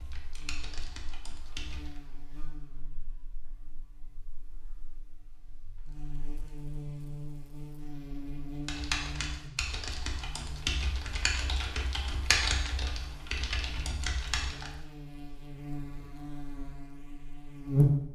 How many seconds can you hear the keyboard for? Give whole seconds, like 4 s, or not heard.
8 s.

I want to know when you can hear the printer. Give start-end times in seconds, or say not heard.
not heard.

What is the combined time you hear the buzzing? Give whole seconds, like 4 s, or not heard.
18 s.